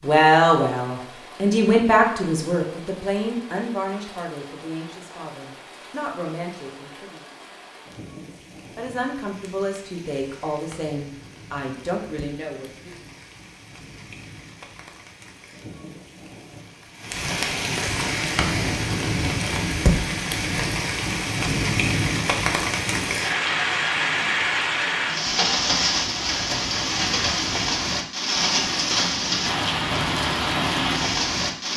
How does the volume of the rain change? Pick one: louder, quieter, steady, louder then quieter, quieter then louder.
louder.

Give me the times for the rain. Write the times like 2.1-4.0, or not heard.
0.0-31.7.